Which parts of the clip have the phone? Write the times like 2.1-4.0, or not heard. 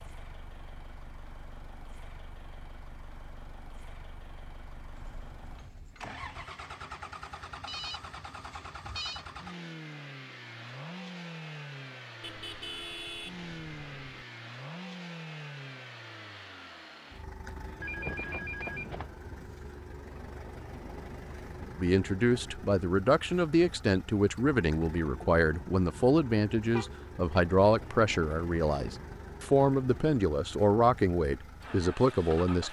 7.7-9.2, 17.8-19.1.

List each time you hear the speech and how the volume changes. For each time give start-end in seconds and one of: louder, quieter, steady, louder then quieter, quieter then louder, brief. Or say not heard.
21.8-32.6 steady.